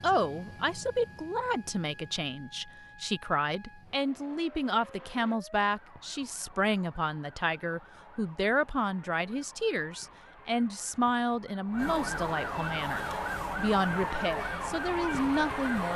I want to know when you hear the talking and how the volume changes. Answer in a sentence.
You can hear the talking from 0.0 to 15.9 s, at a steady volume.